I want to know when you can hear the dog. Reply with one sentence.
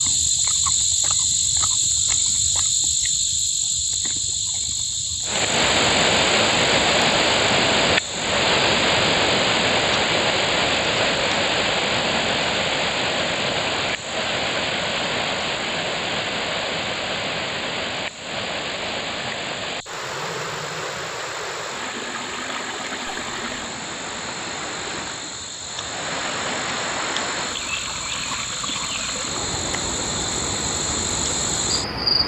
The dog can't be heard in this clip.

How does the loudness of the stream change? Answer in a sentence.
The volume of the stream goes down.